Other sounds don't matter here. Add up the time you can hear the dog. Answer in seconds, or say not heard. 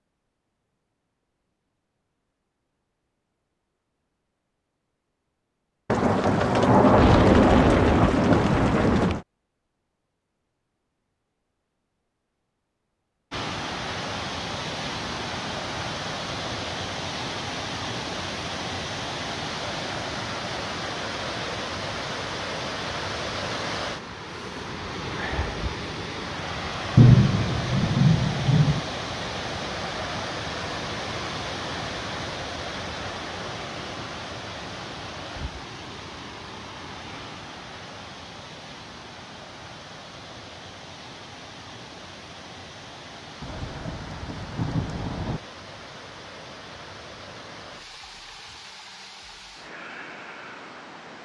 not heard.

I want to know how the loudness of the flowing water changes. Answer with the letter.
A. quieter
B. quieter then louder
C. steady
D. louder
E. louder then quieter
A.